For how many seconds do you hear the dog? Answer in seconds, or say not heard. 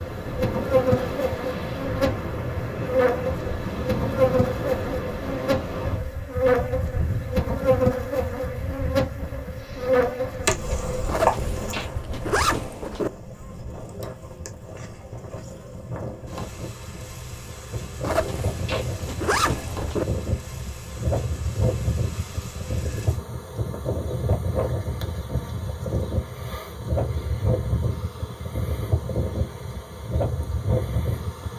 not heard.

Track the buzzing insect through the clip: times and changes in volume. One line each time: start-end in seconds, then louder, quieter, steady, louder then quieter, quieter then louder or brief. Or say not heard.
0.0-31.5 quieter.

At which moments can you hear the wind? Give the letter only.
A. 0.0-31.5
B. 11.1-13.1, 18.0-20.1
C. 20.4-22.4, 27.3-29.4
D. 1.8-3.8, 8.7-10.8
A.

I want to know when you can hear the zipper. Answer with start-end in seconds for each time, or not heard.
11.1-13.1, 18.0-20.1.